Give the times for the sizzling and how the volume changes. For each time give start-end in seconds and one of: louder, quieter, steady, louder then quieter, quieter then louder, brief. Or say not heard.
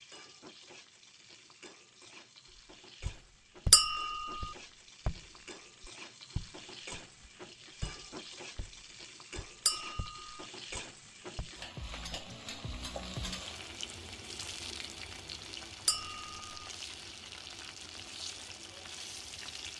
0.0-19.7 louder.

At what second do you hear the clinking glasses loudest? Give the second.
4 s.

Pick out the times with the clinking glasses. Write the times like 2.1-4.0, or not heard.
3.7-4.5, 9.7-10.4, 15.8-16.4.